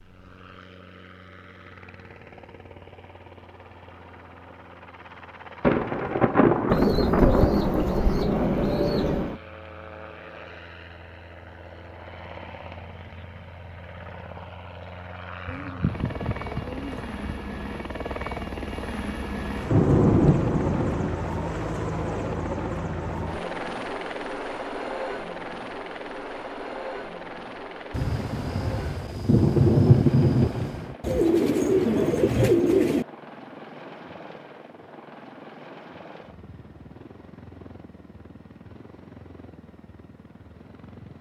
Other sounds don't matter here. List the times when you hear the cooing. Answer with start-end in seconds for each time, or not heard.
6.7-9.4, 15.4-17.4, 31.0-33.0.